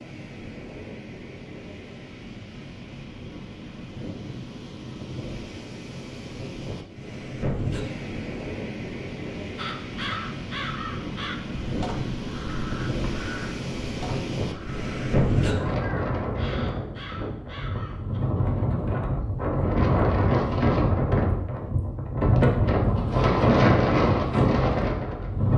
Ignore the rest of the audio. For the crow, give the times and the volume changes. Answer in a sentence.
You can hear the crow from 9.6 to 18.2 s, getting quieter.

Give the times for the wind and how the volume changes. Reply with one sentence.
The wind can be heard from 0.0 to 25.5 s, getting louder.